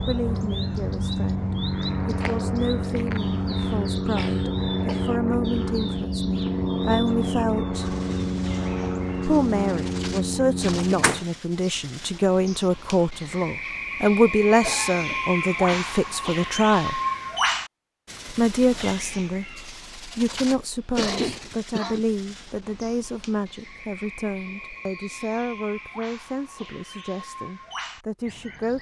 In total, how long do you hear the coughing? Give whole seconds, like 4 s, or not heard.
4 s.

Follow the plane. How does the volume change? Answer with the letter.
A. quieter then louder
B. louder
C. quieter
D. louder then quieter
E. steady
E.